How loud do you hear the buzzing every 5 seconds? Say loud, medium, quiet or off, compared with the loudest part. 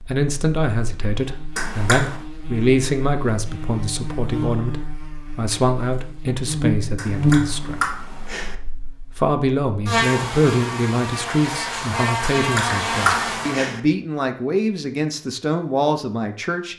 medium, loud, loud, off.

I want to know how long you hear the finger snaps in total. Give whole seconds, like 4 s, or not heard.
4 s.